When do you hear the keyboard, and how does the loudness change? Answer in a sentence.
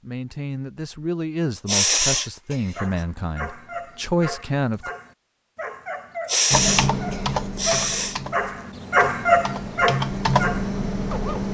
The keyboard can be heard from 6.5 to 11.5 s, getting quieter then louder.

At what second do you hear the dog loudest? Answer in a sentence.
The volume of the dog peaks at 9 seconds.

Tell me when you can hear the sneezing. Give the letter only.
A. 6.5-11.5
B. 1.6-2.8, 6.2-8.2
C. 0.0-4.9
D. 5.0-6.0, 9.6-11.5
B.